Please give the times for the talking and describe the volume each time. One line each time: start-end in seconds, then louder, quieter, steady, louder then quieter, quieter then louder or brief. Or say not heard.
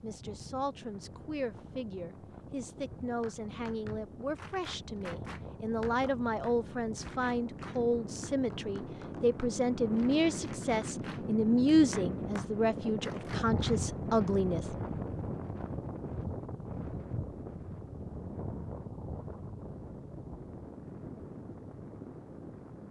0.0-14.7 louder.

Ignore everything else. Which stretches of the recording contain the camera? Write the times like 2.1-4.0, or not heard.
not heard.